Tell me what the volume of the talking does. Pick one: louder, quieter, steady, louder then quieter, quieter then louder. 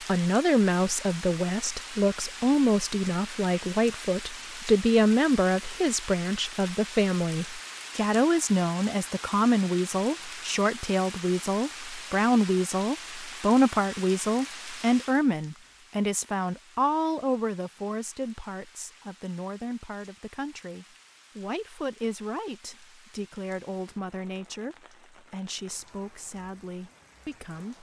quieter.